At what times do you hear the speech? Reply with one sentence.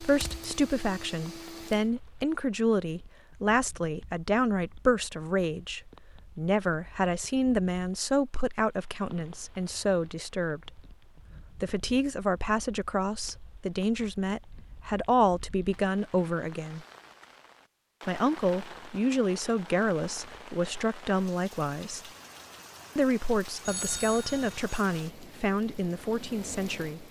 You can hear the speech from 0.0 to 10.8 s, from 11.6 to 16.9 s, from 18.1 to 22.0 s and from 22.9 to 27.0 s.